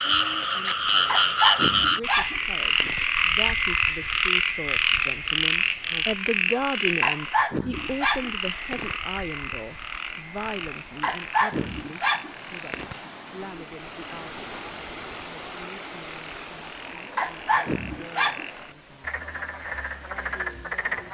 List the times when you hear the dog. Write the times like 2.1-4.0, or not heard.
1.1-3.0, 7.0-8.9, 11.0-12.9, 17.1-18.4.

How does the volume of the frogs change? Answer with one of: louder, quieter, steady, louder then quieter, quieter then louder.
quieter then louder.